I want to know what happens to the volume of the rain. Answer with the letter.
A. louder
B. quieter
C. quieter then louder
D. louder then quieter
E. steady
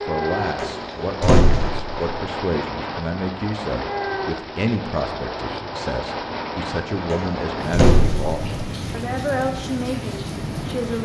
E.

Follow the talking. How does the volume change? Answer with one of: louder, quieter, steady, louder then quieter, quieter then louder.
steady.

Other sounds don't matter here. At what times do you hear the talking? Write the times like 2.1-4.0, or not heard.
0.1-11.0.